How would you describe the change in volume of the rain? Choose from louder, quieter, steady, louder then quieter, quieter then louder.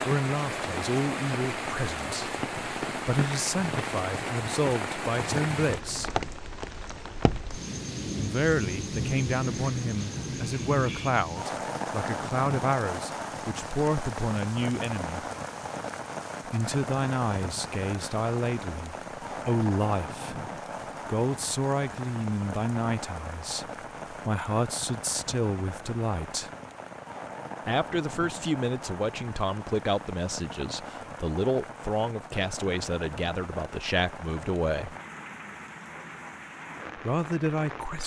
quieter.